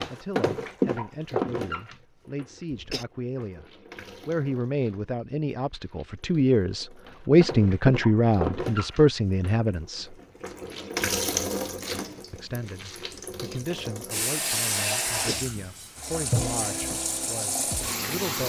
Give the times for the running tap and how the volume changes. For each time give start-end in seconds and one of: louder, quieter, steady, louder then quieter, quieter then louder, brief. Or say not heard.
0.0-18.4 quieter then louder.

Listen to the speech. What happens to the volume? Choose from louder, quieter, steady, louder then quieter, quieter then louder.
louder then quieter.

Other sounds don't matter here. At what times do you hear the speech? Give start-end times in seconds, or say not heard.
0.1-3.6, 4.2-10.2, 12.3-18.4.